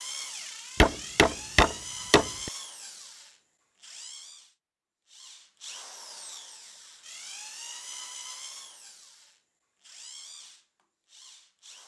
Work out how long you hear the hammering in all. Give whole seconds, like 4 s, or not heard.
2 s.